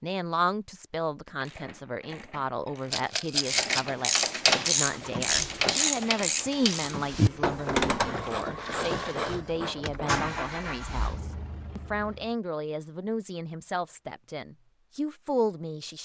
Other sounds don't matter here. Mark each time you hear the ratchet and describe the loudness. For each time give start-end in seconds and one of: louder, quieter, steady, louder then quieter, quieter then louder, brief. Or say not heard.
1.4-10.2 louder then quieter.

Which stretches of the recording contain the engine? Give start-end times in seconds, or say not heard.
4.8-12.3.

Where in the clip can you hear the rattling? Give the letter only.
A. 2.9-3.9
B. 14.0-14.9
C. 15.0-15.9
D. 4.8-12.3
A.